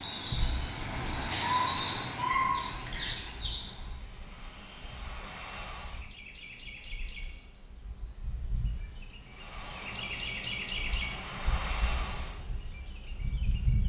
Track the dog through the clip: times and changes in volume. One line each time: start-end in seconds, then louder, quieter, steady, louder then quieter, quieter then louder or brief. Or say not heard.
not heard.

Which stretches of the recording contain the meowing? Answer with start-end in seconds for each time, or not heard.
1.3-3.2.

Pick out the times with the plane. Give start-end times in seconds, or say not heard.
0.0-6.1, 9.2-12.4.